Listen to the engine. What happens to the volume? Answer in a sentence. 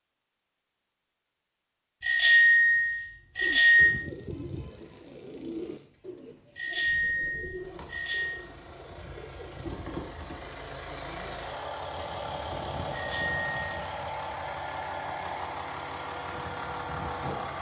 The volume of the engine goes up.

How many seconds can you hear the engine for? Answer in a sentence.
You can hear the engine for 14 seconds altogether.